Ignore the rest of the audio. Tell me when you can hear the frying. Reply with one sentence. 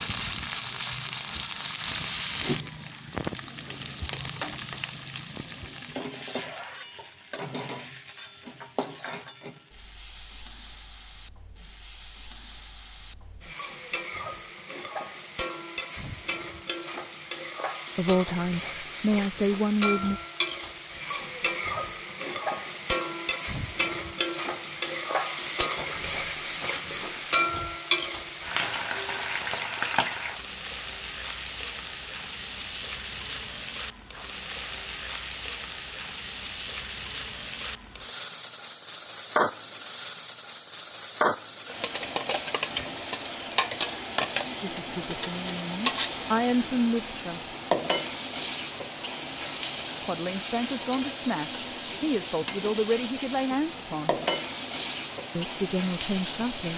You can hear the frying from 0.0 to 56.7 s.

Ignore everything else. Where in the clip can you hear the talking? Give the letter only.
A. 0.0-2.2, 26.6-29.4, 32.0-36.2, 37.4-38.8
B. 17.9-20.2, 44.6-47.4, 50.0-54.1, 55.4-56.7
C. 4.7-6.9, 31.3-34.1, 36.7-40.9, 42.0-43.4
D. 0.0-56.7
B.